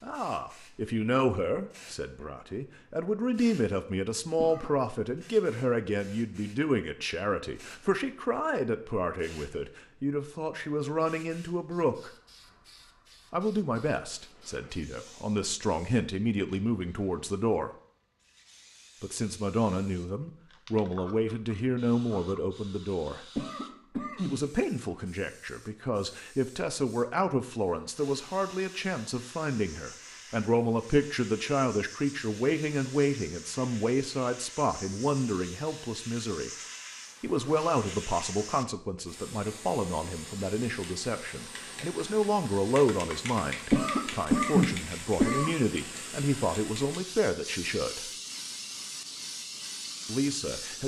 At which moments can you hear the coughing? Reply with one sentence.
The coughing can be heard from 4.3 to 4.8 s, from 23.4 to 24.4 s and from 43.7 to 45.5 s.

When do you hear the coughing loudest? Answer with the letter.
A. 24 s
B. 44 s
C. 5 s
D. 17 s
B.